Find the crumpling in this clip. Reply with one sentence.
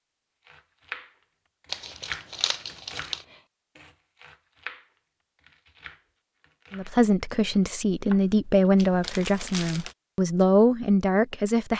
You can hear the crumpling from 1.7 to 3.2 s and from 8.8 to 9.9 s.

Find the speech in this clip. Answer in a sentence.
The speech can be heard from 6.7 to 11.7 s.